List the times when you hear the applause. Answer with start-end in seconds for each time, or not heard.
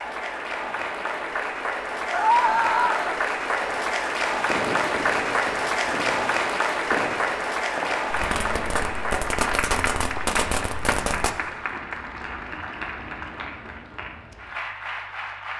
0.0-15.5.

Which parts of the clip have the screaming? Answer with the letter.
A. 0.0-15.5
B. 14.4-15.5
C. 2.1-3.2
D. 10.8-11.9
C.